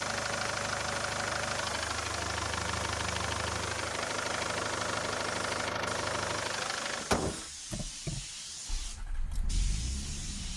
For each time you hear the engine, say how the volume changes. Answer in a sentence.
You can hear the engine from 0.0 to 10.5 s, getting quieter.